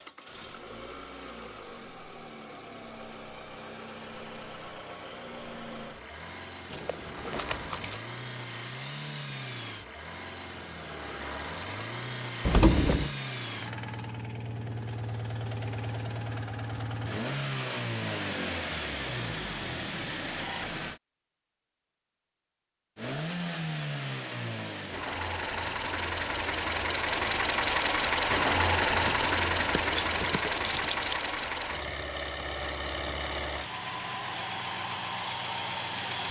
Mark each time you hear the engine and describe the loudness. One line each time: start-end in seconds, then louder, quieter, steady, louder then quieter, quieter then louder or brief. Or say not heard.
0.0-21.0 louder
22.9-36.2 louder then quieter.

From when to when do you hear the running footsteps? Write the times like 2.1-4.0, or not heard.
not heard.